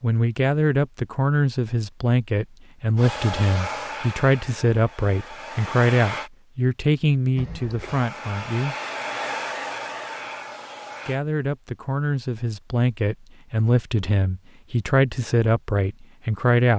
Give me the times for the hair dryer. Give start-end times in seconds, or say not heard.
3.0-6.3, 7.8-11.2.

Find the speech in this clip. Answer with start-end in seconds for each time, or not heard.
0.0-8.8, 11.1-16.7.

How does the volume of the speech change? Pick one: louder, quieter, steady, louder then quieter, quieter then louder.
steady.